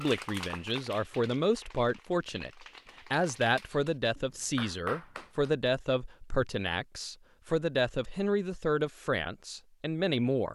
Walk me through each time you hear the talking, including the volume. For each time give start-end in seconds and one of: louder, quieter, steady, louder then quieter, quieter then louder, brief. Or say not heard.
0.0-10.4 steady.